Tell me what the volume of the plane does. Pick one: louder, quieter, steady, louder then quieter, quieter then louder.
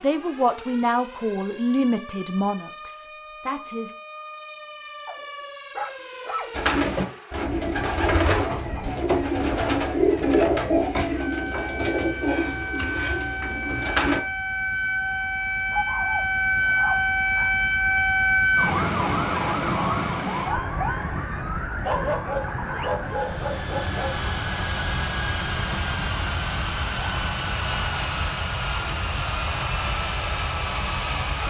steady.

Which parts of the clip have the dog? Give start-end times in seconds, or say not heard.
5.0-6.5, 15.7-17.5, 21.8-24.2.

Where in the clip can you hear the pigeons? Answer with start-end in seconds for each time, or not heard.
6.5-14.2.